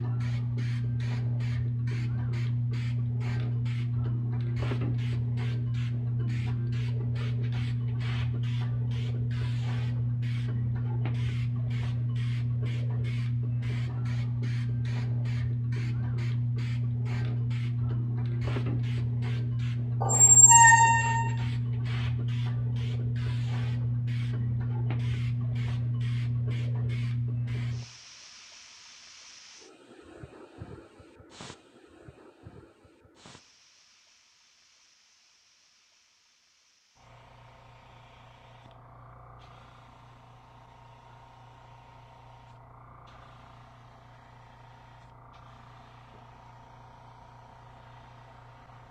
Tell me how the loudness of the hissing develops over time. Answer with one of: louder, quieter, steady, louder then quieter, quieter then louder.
quieter.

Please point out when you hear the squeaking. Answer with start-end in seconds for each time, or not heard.
20.0-21.3.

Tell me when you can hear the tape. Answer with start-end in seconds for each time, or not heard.
not heard.